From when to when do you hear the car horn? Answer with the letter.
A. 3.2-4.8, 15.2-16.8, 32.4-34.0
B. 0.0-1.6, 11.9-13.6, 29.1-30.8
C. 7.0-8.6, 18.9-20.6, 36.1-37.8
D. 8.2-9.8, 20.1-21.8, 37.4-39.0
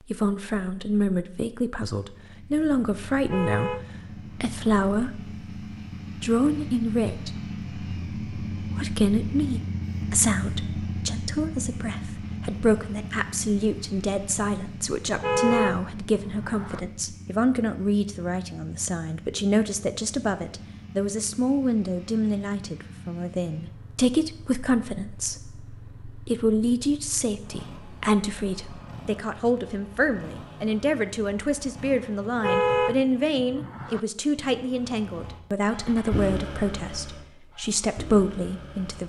A.